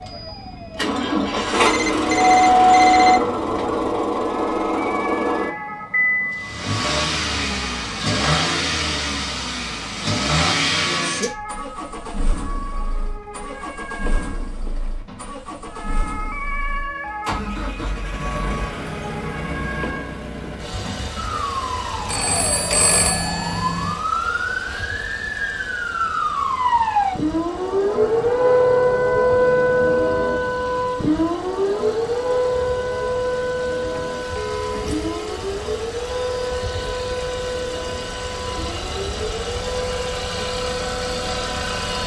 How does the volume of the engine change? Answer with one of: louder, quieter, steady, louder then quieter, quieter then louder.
quieter then louder.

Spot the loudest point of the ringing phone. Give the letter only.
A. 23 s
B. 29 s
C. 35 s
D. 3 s
D.